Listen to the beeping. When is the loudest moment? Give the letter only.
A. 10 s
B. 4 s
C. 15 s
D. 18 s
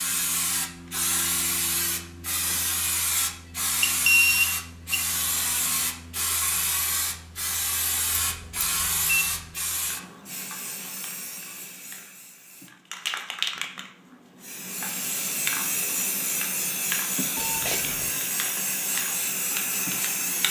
B.